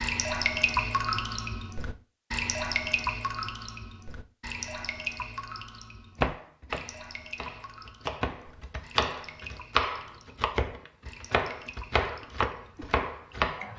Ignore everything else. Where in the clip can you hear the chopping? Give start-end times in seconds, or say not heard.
6.2-13.7.